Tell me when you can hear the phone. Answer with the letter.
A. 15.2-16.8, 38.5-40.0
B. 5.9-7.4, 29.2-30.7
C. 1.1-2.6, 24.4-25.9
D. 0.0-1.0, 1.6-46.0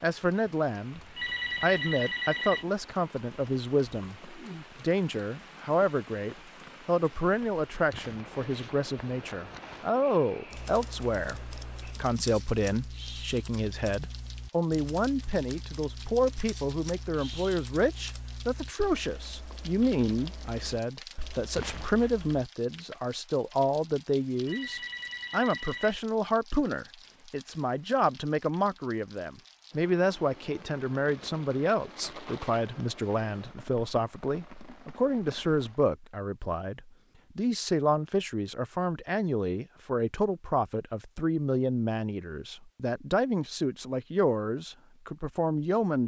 C.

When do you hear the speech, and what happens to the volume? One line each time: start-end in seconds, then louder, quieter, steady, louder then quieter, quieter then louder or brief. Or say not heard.
0.0-1.0 brief
1.6-46.0 steady.